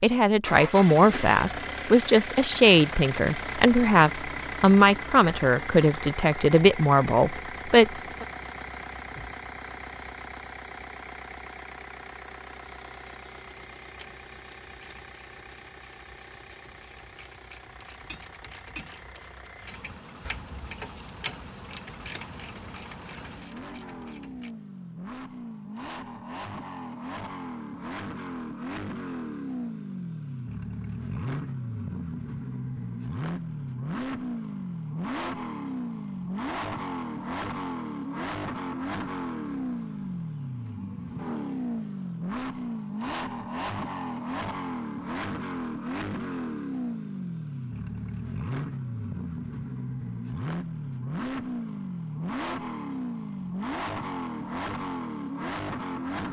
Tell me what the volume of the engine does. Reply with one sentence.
The volume of the engine goes down, then up.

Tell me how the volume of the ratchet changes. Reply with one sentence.
The loudness of the ratchet goes up, then down.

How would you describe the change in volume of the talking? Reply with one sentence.
The volume of the talking stays about the same.